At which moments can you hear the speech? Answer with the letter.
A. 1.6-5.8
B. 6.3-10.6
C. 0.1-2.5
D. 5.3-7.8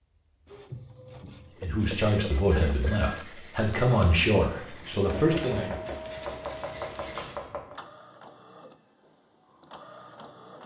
A.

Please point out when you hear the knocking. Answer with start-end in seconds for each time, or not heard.
5.3-7.8.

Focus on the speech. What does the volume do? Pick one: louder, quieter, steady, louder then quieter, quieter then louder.
quieter then louder.